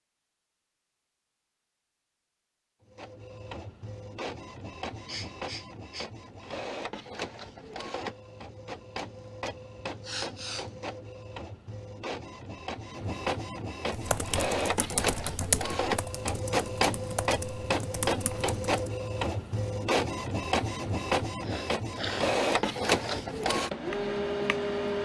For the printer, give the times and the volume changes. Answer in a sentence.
The printer can be heard from 2.9 to 25.0 s, getting louder.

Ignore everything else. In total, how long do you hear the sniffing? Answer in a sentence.
The sniffing can be heard for 4 seconds in total.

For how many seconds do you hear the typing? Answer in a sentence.
You can hear the typing for 5 seconds altogether.